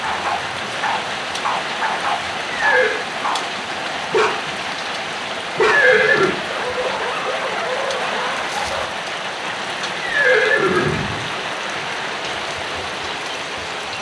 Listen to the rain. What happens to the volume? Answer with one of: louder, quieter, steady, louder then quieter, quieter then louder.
steady.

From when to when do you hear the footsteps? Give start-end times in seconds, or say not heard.
not heard.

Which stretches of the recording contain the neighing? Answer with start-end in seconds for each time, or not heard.
2.5-3.0, 5.5-6.3, 10.0-11.2.